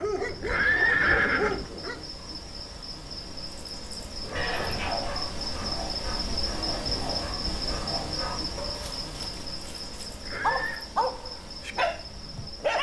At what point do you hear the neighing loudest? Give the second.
1 s.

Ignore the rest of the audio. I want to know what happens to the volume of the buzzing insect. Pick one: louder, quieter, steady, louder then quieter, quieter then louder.
louder then quieter.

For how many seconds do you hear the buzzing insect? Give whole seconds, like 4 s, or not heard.
13 s.